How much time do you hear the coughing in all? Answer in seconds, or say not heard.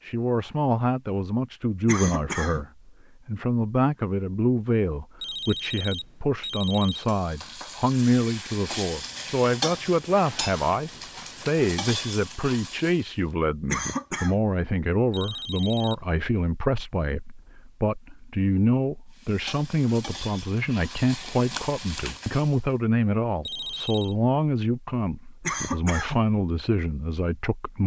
2 s.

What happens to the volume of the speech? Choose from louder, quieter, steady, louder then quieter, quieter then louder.
steady.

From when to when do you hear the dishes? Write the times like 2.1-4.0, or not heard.
not heard.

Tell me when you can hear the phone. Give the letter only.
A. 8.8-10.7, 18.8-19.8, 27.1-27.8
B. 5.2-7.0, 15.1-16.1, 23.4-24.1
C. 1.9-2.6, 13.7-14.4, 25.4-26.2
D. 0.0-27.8
B.